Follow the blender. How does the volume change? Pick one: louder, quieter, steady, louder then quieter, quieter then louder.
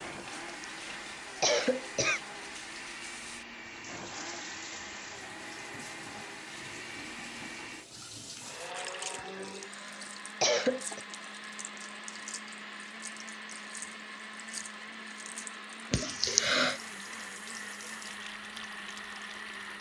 steady.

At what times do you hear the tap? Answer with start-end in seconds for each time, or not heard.
0.0-19.7.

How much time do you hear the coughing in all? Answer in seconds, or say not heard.
5 s.